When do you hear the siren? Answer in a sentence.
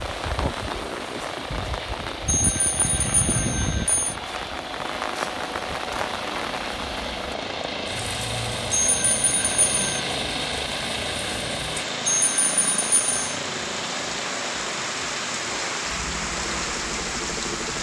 The siren can't be heard in this clip.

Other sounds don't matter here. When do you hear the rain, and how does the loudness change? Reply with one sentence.
The rain can be heard from 0.0 to 17.7 s, getting quieter then louder.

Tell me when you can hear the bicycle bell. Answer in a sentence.
The bicycle bell can be heard from 2.2 to 4.2 s, from 8.7 to 10.0 s and from 12.1 to 13.2 s.